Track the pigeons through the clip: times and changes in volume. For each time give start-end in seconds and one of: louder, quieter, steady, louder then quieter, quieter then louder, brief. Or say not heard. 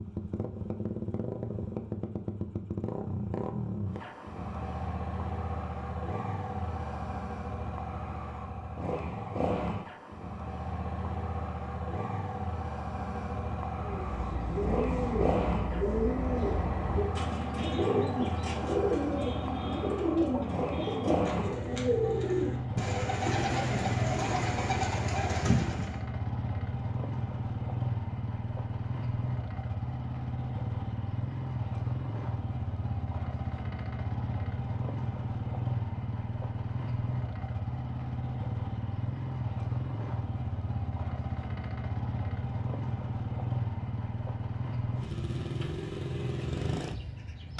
13.8-26.0 steady.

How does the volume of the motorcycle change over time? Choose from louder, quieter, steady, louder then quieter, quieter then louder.
steady.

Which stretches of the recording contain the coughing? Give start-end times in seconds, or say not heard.
not heard.